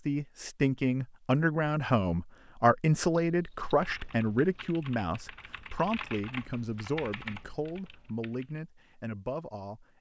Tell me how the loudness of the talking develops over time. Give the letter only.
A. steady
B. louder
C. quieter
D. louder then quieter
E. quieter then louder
C.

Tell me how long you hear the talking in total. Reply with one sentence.
The talking can be heard for 10 seconds in total.